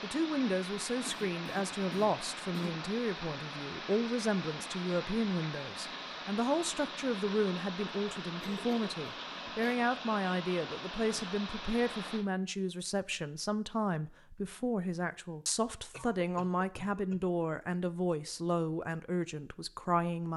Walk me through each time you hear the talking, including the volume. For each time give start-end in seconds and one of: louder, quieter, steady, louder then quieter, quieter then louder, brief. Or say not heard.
0.0-20.3 steady.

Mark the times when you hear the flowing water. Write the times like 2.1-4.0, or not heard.
0.0-12.2.